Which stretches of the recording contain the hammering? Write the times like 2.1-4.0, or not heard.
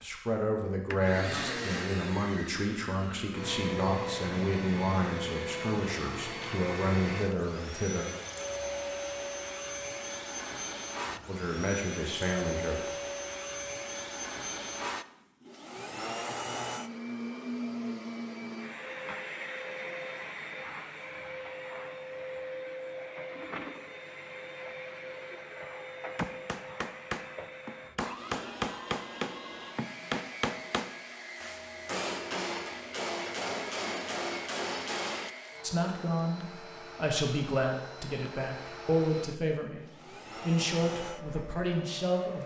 26.1-35.3.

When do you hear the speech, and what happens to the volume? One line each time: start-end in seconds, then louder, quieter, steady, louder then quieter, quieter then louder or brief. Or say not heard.
0.0-8.1 steady
11.2-12.9 brief
35.6-42.4 steady.